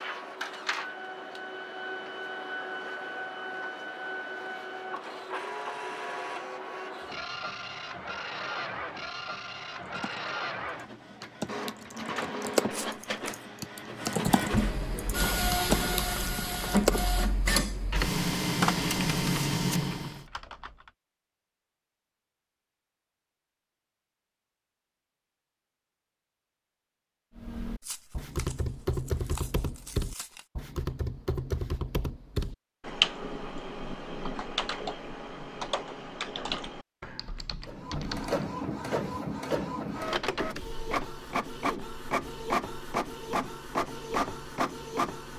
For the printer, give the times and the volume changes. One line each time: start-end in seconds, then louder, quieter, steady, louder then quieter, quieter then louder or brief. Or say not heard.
0.0-20.2 louder
37.6-45.3 steady.